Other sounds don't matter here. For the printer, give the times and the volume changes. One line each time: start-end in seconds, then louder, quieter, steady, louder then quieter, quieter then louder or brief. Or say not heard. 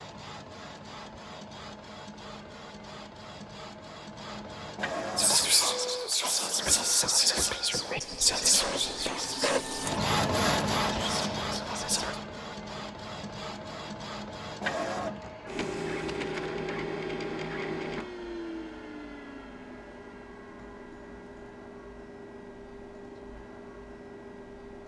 0.0-24.8 louder then quieter.